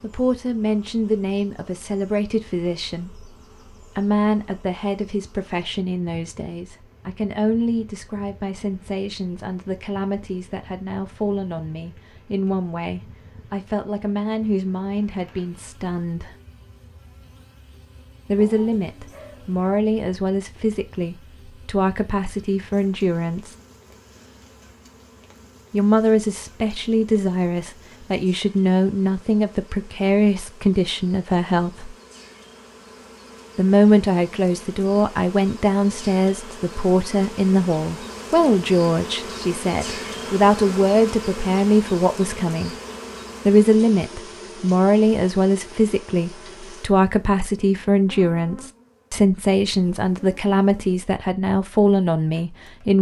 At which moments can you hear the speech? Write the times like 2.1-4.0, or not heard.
0.0-16.4, 18.2-23.6, 25.7-31.9, 33.5-42.8, 43.5-52.9.